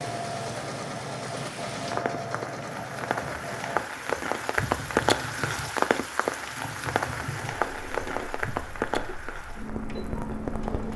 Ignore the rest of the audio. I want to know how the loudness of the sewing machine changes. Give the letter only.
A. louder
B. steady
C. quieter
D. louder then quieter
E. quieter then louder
C.